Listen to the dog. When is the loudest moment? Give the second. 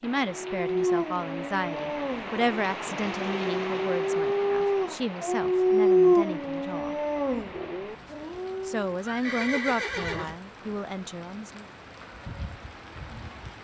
6 s.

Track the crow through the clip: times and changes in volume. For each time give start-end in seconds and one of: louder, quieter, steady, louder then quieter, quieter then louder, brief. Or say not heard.
not heard.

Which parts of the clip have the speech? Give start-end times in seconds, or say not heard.
0.0-7.0, 8.7-11.7.